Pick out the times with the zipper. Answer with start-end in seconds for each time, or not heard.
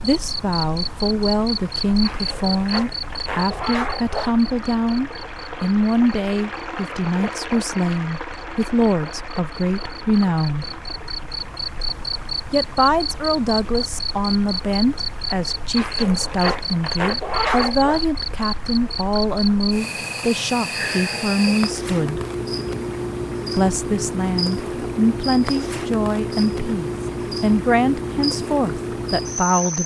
2.0-4.3, 15.8-18.0.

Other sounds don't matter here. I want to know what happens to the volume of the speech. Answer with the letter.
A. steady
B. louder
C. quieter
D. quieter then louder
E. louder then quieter
A.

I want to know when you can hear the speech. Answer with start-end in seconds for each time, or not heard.
0.0-10.8, 12.5-22.2, 23.6-29.8.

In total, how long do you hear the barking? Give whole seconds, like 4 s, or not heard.
not heard.